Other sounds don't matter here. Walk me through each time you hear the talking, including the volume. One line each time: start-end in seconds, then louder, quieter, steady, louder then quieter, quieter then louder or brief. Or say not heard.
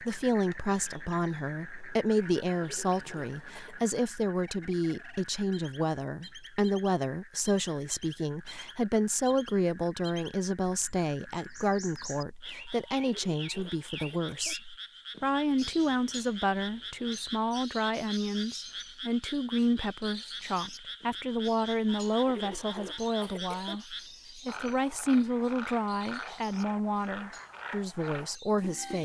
0.0-29.0 steady.